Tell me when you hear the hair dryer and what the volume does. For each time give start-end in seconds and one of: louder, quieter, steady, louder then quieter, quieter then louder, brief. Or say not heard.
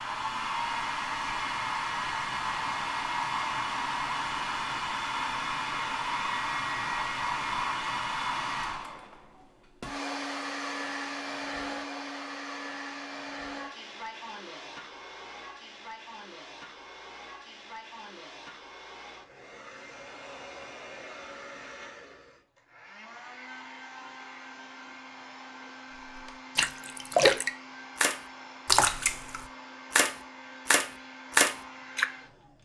0.0-32.6 quieter.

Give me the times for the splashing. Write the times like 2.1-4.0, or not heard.
26.1-32.0.